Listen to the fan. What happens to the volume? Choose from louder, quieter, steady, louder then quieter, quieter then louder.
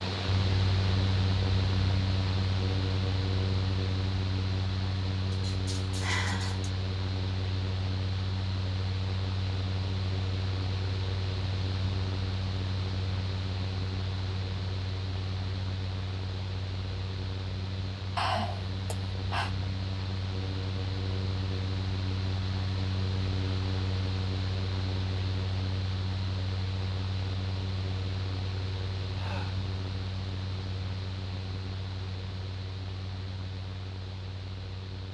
quieter.